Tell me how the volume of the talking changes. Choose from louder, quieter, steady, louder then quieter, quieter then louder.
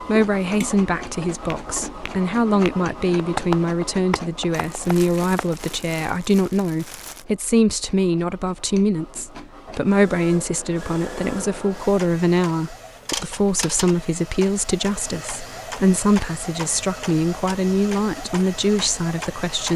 steady.